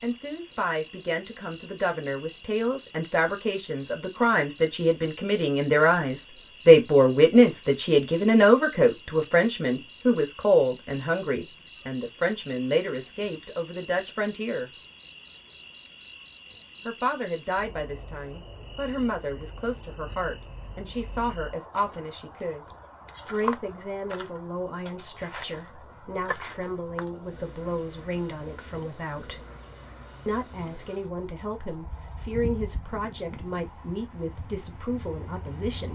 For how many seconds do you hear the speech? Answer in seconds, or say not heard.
32 s.